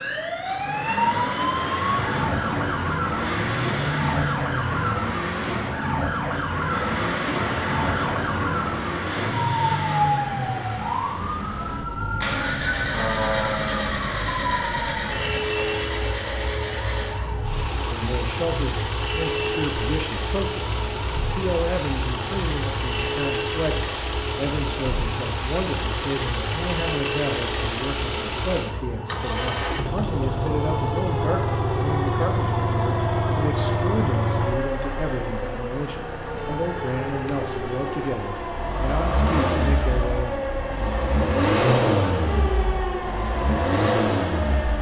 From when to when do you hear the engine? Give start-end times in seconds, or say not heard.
0.0-44.7.